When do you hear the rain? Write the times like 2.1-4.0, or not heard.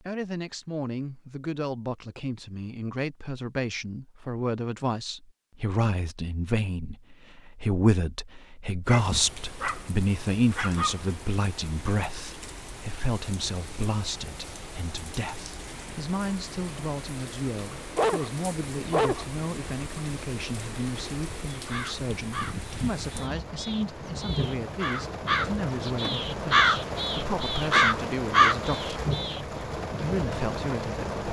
9.0-31.2.